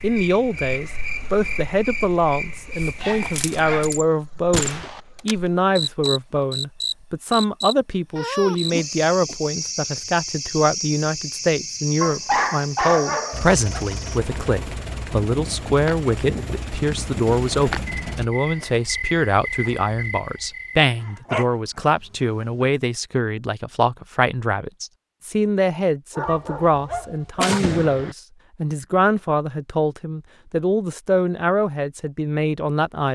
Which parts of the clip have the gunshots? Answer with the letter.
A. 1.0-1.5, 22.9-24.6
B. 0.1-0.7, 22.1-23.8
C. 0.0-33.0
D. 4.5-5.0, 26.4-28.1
D.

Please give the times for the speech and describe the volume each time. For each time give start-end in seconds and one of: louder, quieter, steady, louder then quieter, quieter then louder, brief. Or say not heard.
0.0-33.0 steady.